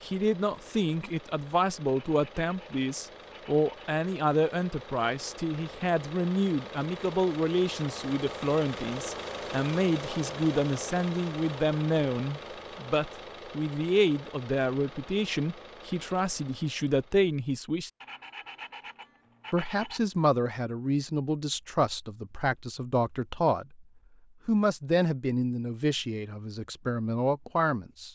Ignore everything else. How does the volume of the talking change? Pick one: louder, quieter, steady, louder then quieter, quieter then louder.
steady.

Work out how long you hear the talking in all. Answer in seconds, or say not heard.
26 s.